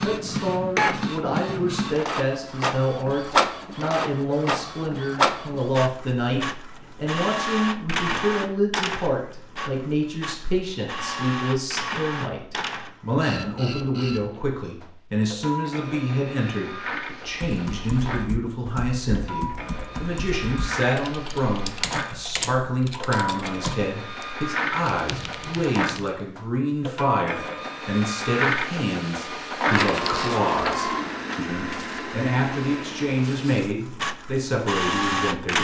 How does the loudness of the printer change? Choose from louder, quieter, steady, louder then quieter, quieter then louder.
quieter then louder.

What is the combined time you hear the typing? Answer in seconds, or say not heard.
9 s.